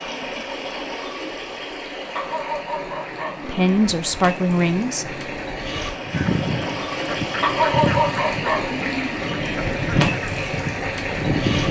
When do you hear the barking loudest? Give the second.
8 s.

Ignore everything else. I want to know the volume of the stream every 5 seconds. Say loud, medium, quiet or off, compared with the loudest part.
medium, loud, loud.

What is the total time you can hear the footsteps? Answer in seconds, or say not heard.
not heard.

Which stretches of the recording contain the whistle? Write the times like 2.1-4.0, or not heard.
not heard.